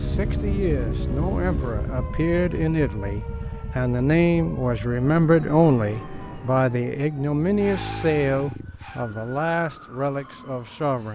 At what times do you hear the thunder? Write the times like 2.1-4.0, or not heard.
not heard.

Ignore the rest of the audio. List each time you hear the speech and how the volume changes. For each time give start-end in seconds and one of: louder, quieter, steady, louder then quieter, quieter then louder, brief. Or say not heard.
0.0-11.1 louder then quieter.